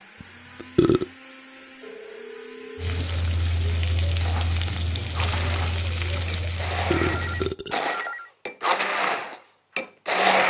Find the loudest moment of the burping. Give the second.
1 s.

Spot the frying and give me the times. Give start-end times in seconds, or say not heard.
2.8-7.5.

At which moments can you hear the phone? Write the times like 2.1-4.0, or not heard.
1.8-3.0, 7.0-8.3.